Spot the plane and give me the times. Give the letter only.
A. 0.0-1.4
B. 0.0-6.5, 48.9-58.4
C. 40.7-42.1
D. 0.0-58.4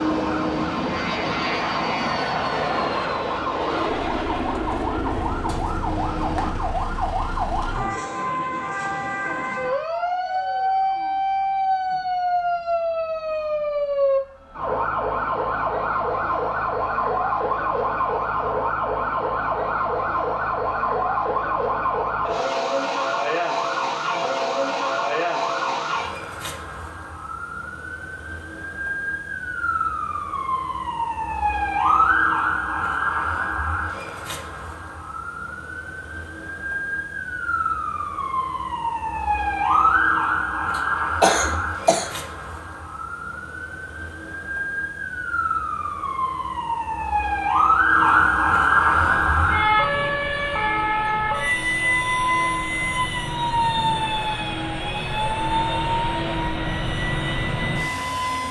B.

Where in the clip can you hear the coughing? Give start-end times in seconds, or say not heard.
40.7-42.1.